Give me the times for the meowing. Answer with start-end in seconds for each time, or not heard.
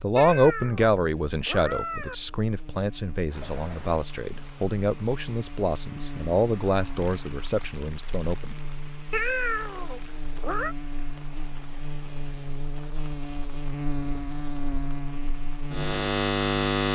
0.1-2.1, 9.1-10.8.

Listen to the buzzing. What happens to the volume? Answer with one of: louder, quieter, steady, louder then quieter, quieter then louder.
louder.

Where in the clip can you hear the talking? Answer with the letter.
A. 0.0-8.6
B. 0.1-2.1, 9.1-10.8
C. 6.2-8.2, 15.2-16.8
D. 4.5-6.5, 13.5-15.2
A.